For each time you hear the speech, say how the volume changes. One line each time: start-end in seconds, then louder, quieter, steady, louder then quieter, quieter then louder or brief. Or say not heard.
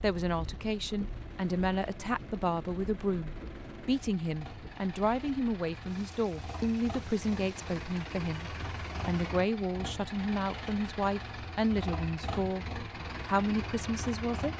0.0-14.5 steady.